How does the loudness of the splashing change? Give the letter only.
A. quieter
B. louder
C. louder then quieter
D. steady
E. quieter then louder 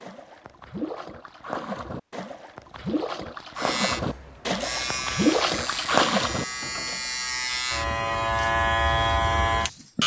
B.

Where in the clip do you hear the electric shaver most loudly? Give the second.
9 s.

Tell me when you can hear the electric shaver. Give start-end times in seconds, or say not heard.
3.5-10.0.